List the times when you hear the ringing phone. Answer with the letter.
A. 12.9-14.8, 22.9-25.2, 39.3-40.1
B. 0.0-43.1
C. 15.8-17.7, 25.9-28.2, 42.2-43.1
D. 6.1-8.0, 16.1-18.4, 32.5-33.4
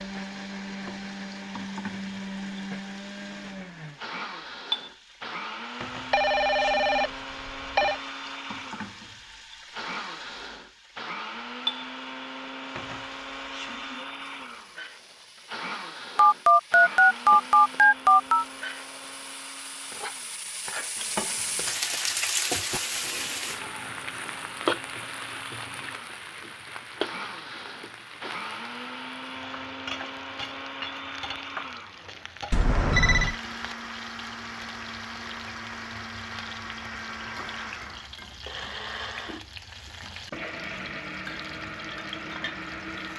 D.